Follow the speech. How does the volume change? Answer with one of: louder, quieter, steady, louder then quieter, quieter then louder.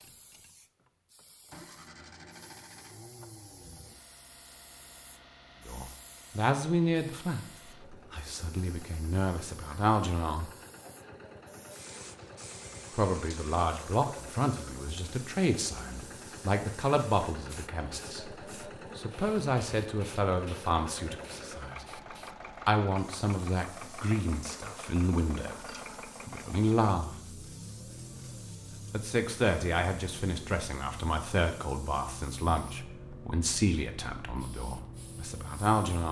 steady.